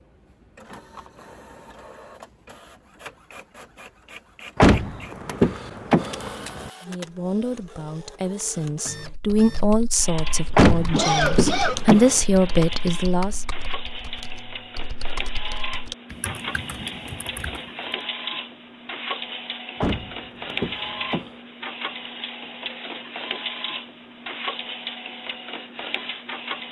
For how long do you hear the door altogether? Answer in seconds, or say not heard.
5 s.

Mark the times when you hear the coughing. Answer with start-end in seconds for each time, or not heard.
10.9-11.8.